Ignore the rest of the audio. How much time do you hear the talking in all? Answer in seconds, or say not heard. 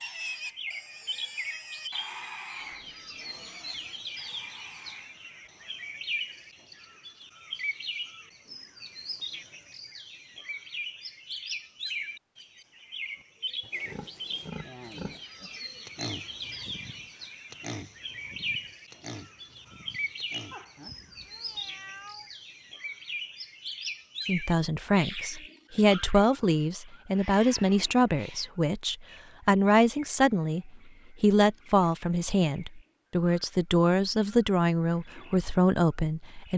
12 s.